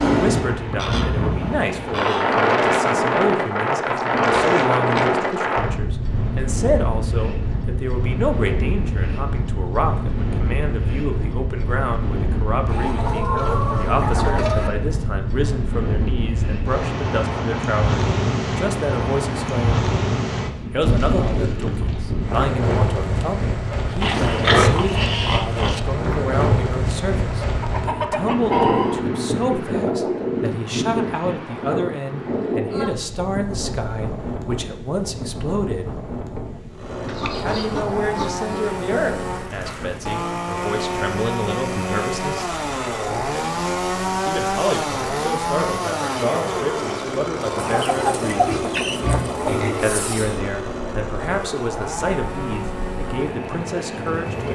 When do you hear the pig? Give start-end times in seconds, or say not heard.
4.0-5.2, 24.0-25.8, 48.4-50.0.